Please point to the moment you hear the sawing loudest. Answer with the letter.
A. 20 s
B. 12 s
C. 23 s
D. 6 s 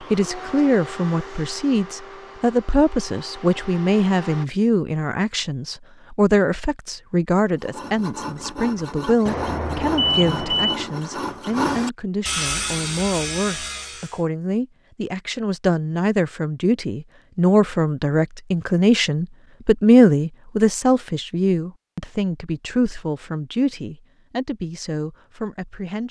B.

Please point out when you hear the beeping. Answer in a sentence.
The beeping can be heard from 9.2 to 10.8 s.